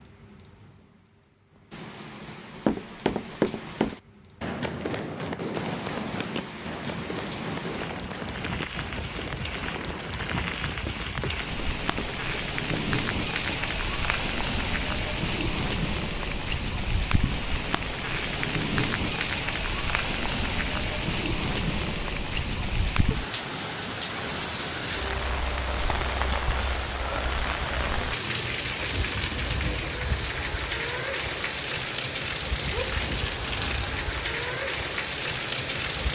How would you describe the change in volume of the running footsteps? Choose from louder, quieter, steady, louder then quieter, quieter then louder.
quieter.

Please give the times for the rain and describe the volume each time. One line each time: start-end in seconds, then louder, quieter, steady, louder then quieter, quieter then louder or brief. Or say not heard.
0.0-36.1 louder.